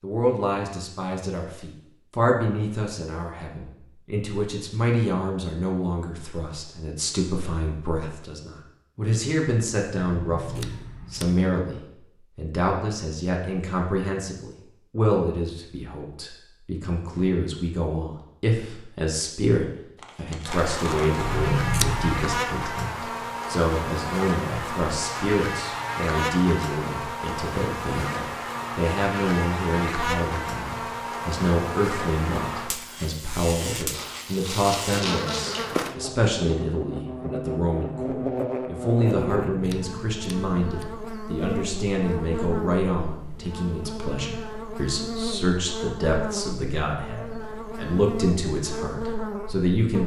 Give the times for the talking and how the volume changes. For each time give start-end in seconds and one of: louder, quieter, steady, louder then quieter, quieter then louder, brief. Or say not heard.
0.0-50.0 steady.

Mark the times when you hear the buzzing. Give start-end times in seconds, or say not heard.
20.4-50.0.